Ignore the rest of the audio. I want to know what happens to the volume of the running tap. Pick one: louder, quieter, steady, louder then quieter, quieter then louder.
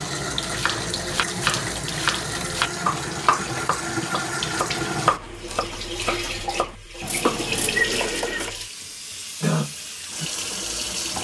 steady.